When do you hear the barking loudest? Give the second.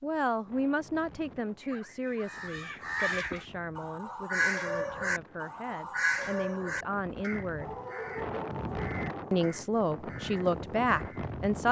8 s.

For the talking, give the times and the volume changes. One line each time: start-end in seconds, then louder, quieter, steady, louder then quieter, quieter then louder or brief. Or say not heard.
0.0-7.8 quieter then louder
9.3-11.6 brief.